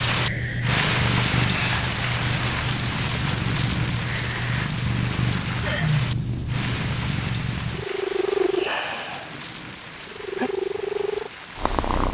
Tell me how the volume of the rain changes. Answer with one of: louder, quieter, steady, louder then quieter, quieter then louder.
quieter.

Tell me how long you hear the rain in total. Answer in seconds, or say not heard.
12 s.